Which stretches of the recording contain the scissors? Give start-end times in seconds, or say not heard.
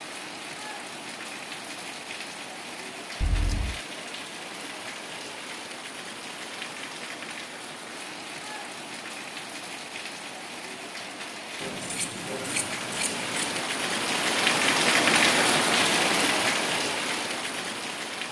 3.2-3.8, 11.6-13.6.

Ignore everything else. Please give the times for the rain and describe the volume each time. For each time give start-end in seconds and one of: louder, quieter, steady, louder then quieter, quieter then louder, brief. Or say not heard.
0.0-18.2 louder.